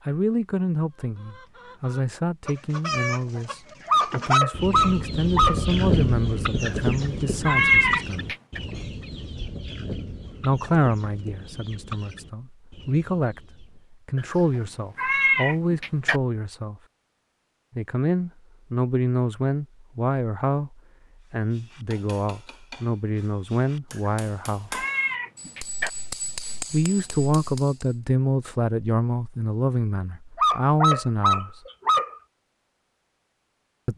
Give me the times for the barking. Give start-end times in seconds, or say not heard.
3.9-5.7, 30.4-32.1.